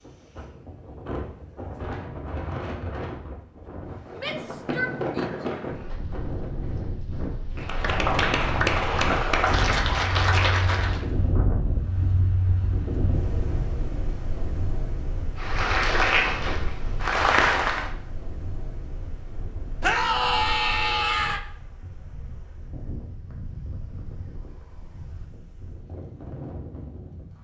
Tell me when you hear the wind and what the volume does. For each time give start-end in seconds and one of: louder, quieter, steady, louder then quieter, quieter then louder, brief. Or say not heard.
0.0-27.3 quieter.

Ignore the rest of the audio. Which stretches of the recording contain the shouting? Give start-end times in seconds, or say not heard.
4.2-5.3, 19.8-21.4.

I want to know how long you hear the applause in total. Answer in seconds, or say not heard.
6 s.